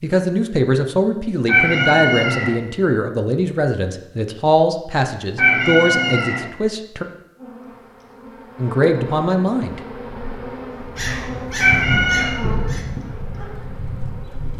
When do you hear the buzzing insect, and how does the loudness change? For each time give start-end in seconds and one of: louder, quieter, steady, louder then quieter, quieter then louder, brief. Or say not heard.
7.3-14.5 louder then quieter.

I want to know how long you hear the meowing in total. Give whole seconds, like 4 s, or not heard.
3 s.